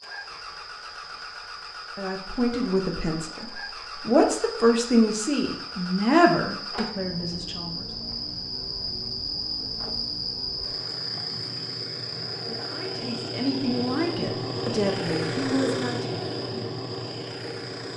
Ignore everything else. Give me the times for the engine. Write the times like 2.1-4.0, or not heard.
0.0-17.9.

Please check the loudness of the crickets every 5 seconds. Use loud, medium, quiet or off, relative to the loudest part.
medium, loud, loud, medium.